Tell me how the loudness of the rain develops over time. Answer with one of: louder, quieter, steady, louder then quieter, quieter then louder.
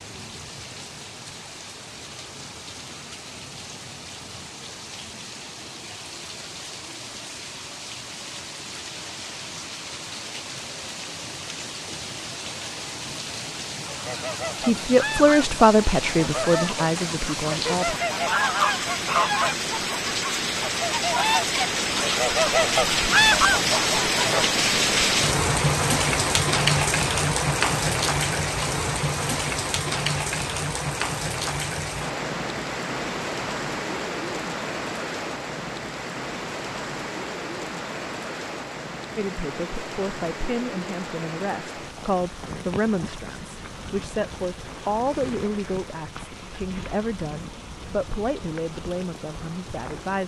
louder then quieter.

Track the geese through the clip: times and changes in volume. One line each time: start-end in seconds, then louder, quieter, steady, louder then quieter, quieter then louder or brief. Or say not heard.
13.8-24.4 louder.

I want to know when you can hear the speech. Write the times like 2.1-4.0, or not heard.
14.6-18.0, 39.1-50.2.